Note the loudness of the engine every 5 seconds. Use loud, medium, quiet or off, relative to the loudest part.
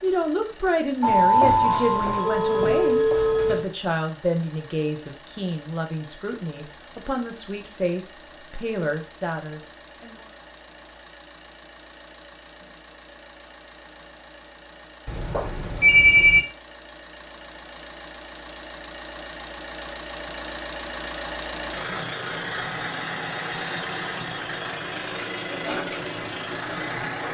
quiet, quiet, quiet, medium, loud, loud.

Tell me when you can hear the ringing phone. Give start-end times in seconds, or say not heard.
1.0-3.6, 15.1-16.4.